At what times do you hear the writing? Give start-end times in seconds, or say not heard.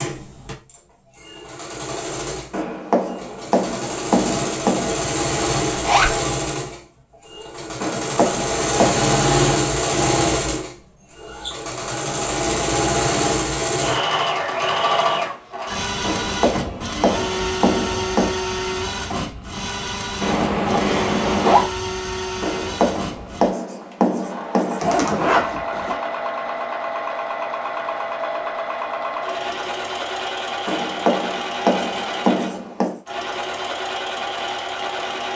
2.5-5.0, 7.8-9.1, 16.0-18.4, 22.4-25.0, 30.6-33.0.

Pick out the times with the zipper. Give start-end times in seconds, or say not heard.
5.7-6.2, 20.2-21.7, 24.8-25.9.